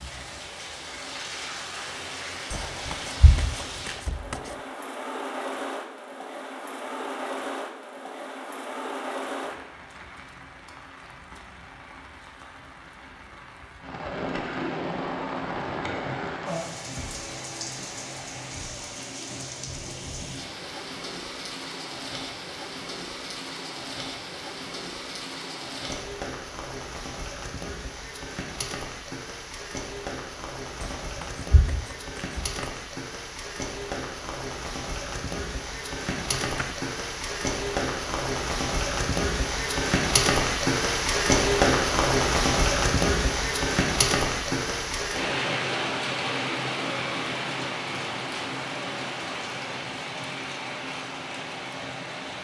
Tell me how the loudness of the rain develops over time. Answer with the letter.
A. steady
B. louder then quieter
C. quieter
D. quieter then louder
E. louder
E.